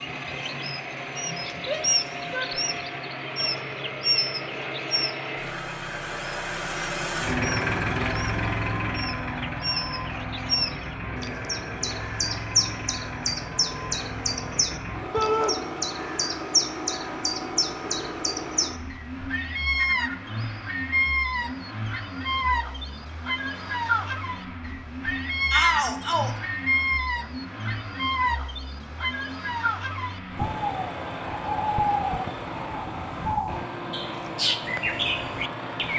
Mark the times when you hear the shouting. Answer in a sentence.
The shouting can be heard from 1.6 to 2.6 s, from 15.1 to 15.6 s and from 25.5 to 26.4 s.